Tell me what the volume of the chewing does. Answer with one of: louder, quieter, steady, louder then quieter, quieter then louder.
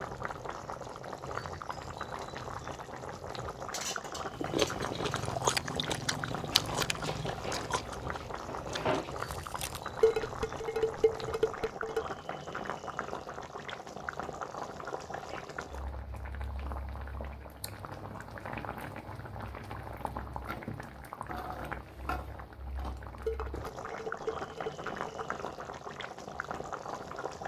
quieter.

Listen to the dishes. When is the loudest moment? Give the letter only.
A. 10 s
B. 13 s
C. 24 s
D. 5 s
A.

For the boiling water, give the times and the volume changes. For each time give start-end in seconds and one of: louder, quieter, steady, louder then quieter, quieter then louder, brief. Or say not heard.
0.0-27.4 steady.